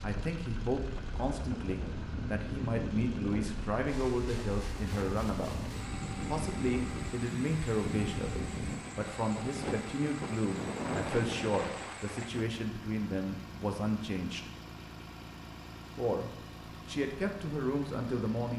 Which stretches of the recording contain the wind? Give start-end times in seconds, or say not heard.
0.0-12.4.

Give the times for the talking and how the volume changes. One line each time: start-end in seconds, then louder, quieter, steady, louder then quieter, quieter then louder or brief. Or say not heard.
0.0-14.5 steady
15.9-18.5 brief.